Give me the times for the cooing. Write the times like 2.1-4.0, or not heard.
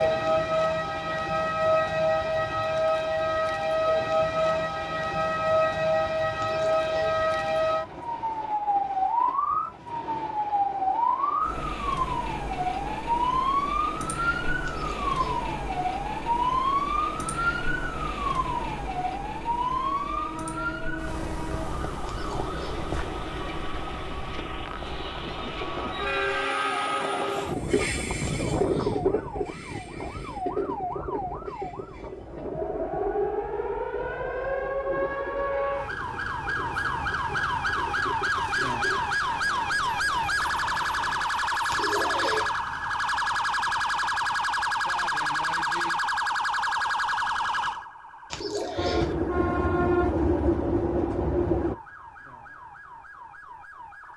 6.3-7.2, 14.6-15.5, 22.1-22.9, 28.4-29.1, 41.6-42.5, 48.3-49.1.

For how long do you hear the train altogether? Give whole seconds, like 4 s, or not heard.
44 s.